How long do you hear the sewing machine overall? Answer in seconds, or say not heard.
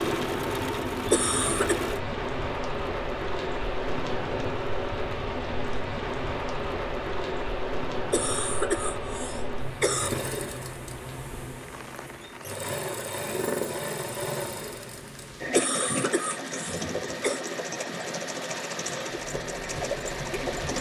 21 s.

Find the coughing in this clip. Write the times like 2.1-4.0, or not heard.
1.1-1.8, 8.1-10.1, 15.6-17.4.